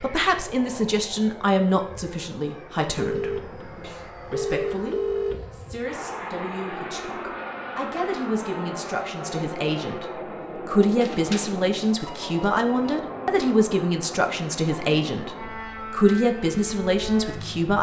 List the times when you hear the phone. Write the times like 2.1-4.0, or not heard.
3.0-5.5, 11.0-13.0.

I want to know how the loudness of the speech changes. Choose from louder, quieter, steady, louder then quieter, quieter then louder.
quieter then louder.